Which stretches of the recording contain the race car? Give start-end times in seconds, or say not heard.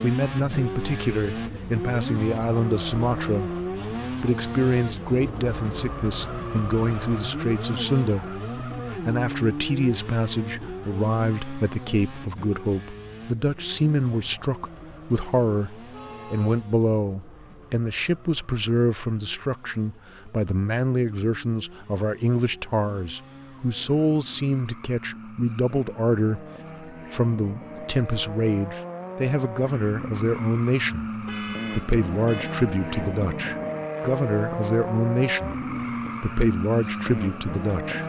0.0-38.0.